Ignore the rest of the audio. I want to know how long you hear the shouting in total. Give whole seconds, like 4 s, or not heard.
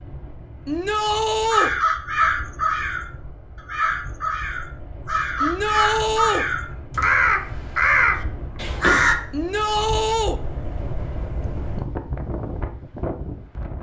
3 s.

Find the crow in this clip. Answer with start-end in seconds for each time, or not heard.
1.5-9.2.